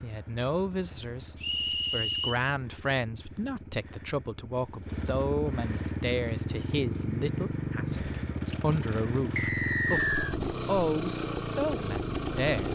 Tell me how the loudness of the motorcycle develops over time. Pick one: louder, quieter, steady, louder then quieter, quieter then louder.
louder.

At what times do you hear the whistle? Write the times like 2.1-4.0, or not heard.
1.4-2.4, 9.3-10.3.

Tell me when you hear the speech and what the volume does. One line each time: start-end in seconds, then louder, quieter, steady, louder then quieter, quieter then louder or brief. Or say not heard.
0.0-12.7 steady.